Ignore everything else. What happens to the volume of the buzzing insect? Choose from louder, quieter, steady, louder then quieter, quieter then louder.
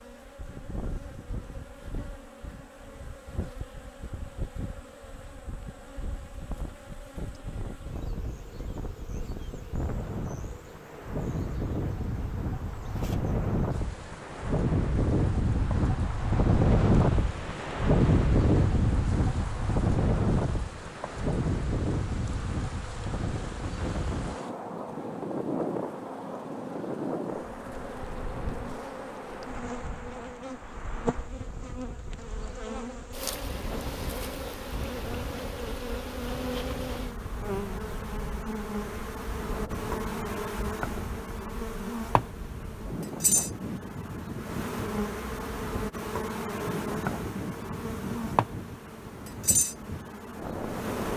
louder.